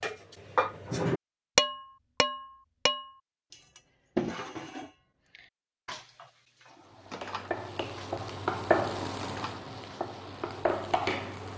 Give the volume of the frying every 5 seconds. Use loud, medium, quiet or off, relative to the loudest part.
off, loud, loud.